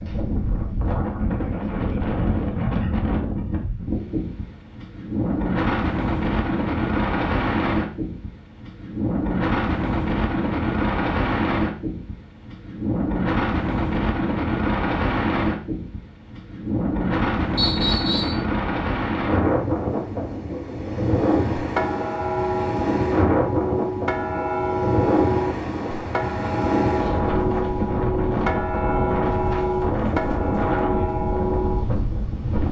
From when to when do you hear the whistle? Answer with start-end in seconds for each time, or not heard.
17.6-18.4.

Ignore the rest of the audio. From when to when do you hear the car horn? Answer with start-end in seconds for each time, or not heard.
not heard.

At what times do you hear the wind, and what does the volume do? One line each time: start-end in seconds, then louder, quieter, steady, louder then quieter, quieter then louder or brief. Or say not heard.
0.0-32.6 steady.